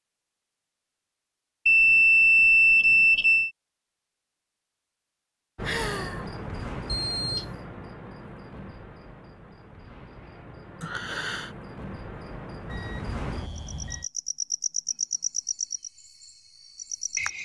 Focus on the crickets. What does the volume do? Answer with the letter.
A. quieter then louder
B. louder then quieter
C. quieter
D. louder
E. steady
A.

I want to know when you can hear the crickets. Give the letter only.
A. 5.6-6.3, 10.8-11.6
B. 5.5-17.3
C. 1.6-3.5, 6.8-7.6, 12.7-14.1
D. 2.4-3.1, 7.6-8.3
B.